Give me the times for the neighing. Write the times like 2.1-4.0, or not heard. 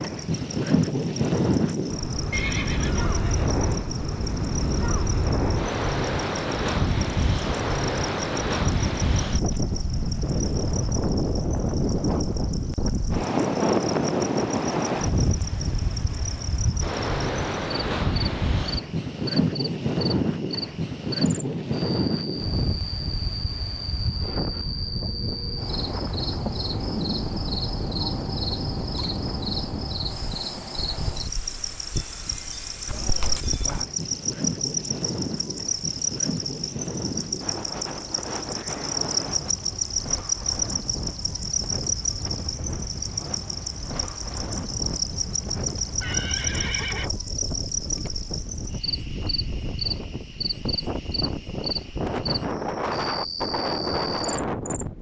2.3-3.5, 32.9-33.5, 45.8-47.1.